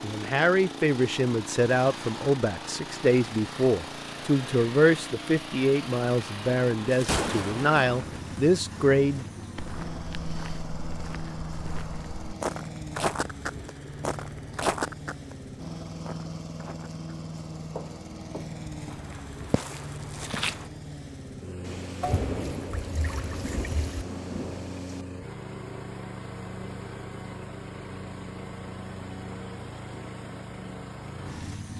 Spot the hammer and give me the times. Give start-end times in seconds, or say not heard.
not heard.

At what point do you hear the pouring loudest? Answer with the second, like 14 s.
22 s.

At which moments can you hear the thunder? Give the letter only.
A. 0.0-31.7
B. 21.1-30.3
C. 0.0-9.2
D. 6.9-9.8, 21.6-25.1
D.